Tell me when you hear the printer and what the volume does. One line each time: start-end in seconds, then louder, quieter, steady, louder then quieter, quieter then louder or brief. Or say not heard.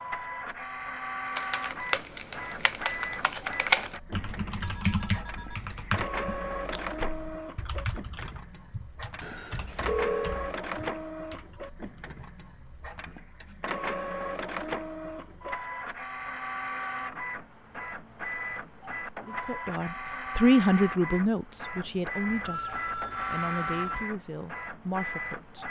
0.0-25.6 steady.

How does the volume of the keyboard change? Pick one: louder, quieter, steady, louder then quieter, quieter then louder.
quieter.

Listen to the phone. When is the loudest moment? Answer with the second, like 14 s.
10 s.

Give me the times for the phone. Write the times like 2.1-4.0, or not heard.
4.4-6.1, 9.2-10.4, 22.3-24.1.